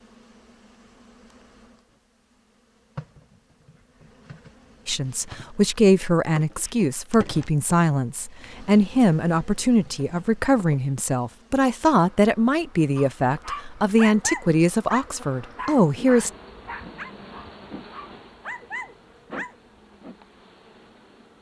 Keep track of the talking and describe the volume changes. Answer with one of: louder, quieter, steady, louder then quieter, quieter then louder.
steady.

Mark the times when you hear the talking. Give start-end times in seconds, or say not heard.
4.8-16.3.